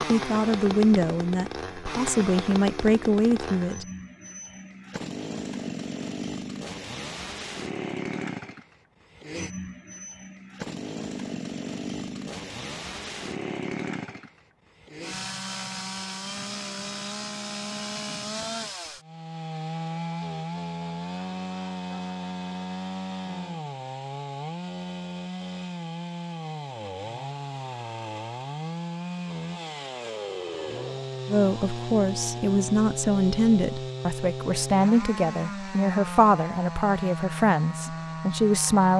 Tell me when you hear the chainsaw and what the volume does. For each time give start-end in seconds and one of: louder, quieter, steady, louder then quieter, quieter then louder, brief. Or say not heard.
0.0-38.9 steady.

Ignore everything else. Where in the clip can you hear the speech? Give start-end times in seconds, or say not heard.
0.1-3.9, 31.2-38.9.